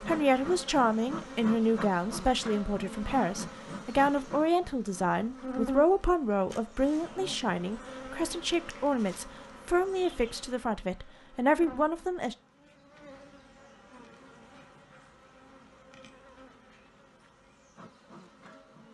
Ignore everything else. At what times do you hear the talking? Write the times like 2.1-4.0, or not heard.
0.1-12.3.